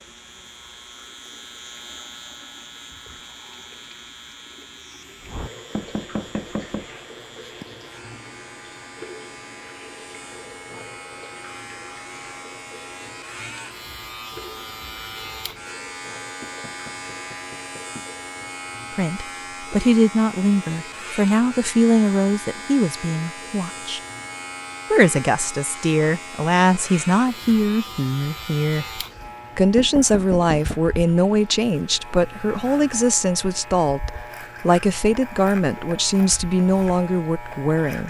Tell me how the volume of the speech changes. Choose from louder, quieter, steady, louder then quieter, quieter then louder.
steady.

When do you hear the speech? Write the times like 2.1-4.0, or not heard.
18.9-24.0, 24.9-38.0.